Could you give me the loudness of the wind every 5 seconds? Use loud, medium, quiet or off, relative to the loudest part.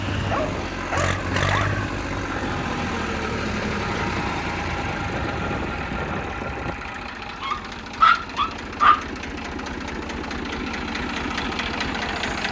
loud, loud, off.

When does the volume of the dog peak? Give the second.
8 s.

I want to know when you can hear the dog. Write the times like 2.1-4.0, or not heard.
0.2-1.8, 7.3-9.1.